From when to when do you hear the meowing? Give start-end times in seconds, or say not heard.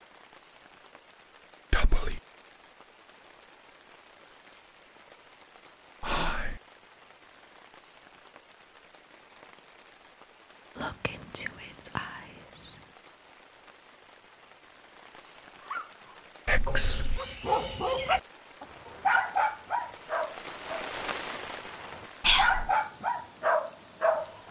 not heard.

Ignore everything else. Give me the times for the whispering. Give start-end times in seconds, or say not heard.
1.7-2.2, 6.0-6.6, 10.8-12.8, 16.4-17.2, 22.2-22.7.